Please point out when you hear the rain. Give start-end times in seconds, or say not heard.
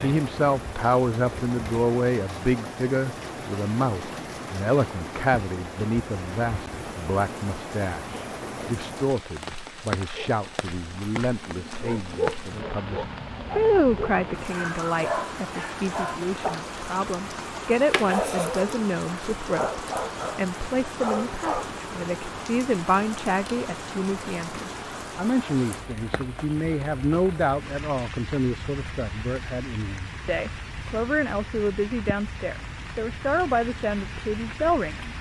0.0-35.1.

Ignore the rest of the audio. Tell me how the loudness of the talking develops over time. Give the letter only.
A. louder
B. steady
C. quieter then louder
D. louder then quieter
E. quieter
B.